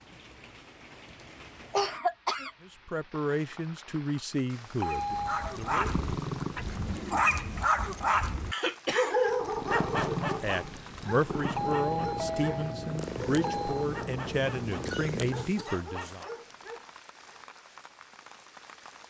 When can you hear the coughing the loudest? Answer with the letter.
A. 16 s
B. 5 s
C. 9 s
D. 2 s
D.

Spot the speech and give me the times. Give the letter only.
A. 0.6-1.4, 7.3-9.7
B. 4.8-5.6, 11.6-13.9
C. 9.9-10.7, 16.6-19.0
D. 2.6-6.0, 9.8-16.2
D.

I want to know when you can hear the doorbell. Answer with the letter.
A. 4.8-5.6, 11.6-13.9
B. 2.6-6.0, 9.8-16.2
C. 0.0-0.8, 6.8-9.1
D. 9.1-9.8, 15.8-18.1
A.